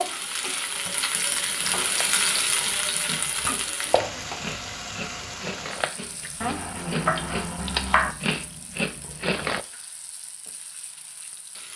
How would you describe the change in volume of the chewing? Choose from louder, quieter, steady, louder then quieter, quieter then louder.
louder.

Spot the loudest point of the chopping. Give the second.
8 s.